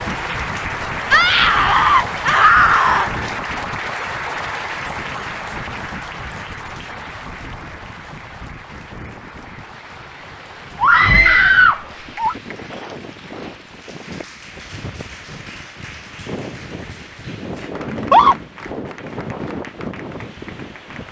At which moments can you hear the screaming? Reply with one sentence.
You can hear the screaming from 1.1 to 3.1 s, from 10.8 to 12.3 s and from 17.9 to 18.4 s.